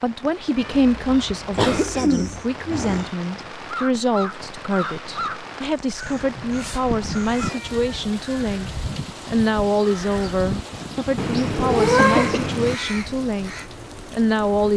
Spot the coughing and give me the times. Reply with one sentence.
The coughing can be heard from 1.6 to 3.1 s and from 11.9 to 12.6 s.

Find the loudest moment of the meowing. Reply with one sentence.
The loudest moment of the meowing is at 12 seconds.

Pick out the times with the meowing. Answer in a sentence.
The meowing can be heard from 0.6 to 2.5 s, from 6.0 to 8.0 s and from 11.2 to 12.8 s.